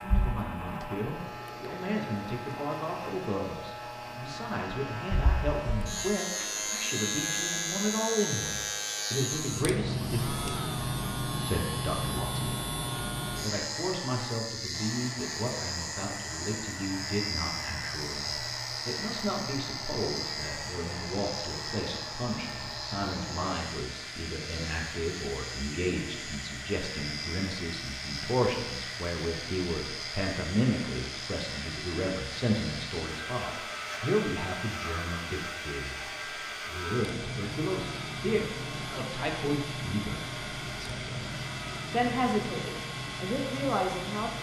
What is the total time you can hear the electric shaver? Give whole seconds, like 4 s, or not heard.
44 s.